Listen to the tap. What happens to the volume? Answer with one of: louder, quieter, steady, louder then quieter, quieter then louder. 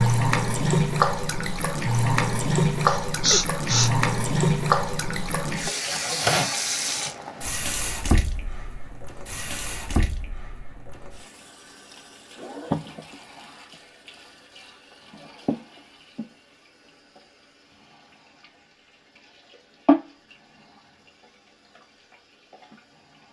quieter then louder.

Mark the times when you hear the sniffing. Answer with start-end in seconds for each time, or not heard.
2.8-3.9.